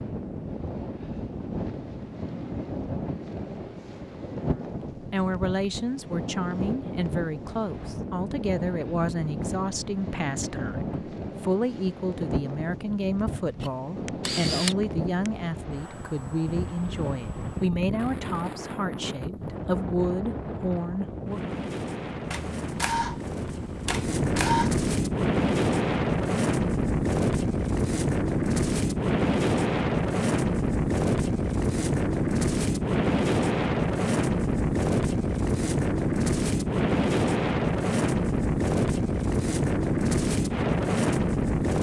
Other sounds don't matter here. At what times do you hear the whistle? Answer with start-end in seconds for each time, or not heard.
not heard.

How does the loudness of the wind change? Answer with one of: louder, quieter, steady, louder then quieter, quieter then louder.
louder.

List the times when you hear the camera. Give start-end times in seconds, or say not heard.
13.6-15.3, 22.3-24.7.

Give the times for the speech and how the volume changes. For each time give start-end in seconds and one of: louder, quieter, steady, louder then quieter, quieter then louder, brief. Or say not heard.
4.5-21.6 steady.